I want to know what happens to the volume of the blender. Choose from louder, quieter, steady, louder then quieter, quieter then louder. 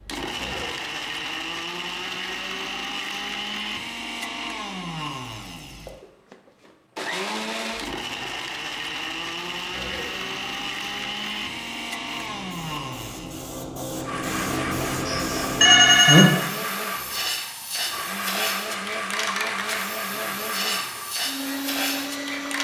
steady.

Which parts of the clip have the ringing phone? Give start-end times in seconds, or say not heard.
15.1-16.2.